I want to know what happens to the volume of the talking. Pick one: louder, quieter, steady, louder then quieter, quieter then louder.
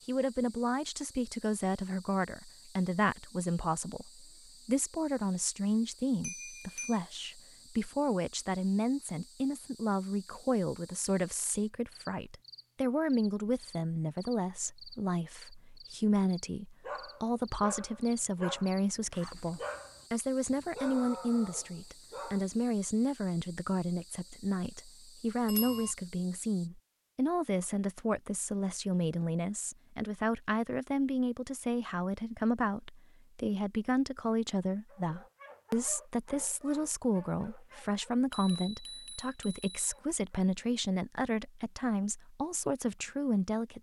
steady.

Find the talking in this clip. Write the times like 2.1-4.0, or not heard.
0.1-43.7.